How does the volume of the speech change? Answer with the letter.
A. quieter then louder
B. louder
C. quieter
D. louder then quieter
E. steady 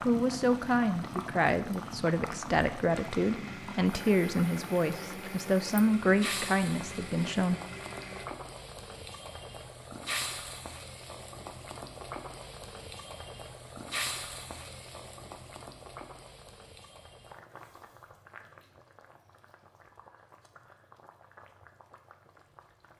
E.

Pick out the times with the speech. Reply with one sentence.
You can hear the speech from 0.0 to 7.6 s.